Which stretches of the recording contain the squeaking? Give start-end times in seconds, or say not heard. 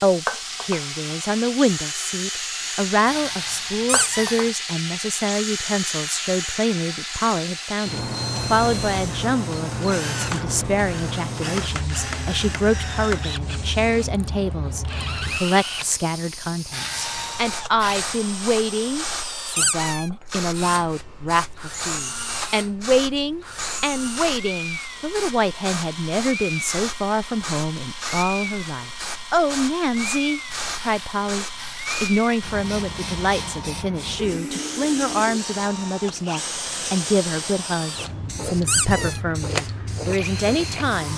3.9-4.4, 19.6-20.1, 38.6-39.2.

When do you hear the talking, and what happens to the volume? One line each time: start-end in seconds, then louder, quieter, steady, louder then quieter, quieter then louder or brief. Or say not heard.
0.0-41.1 steady.